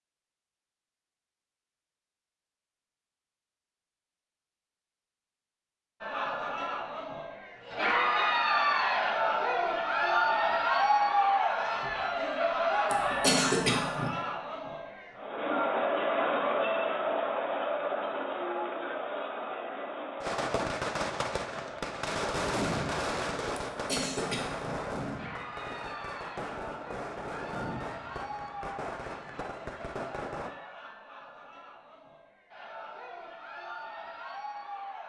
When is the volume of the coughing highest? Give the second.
13 s.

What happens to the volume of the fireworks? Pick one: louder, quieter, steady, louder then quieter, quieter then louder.
quieter.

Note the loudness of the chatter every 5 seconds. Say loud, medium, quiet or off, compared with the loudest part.
off, loud, loud, loud, quiet, quiet, quiet.